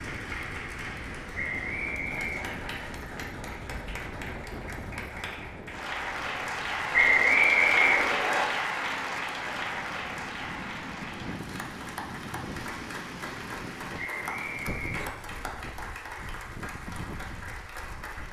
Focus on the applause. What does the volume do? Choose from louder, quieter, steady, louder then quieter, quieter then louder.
louder then quieter.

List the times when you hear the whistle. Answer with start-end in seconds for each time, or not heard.
1.4-2.5, 6.9-8.4, 13.9-15.1.